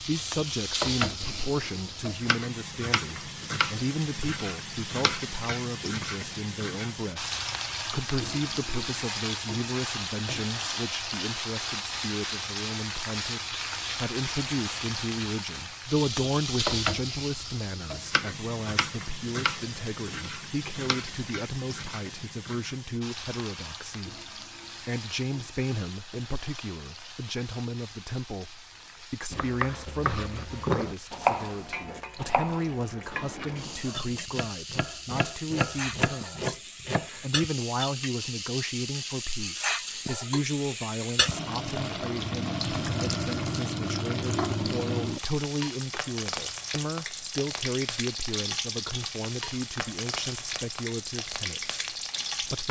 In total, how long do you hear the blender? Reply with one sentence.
The blender can't be heard in this clip.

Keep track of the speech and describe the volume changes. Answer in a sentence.
The volume of the speech stays about the same.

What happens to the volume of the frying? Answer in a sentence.
The volume of the frying goes down, then up.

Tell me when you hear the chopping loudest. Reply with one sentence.
The loudest moment of the chopping is at 31 seconds.